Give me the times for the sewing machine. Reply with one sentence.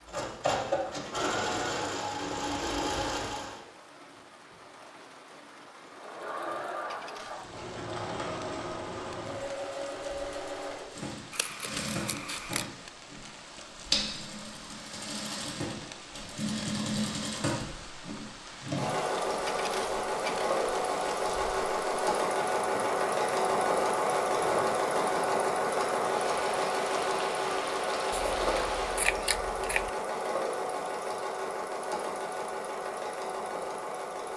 The sewing machine can be heard from 0.0 to 3.6 s and from 5.8 to 34.3 s.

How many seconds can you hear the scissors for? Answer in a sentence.
The scissors can be heard for 3 seconds in total.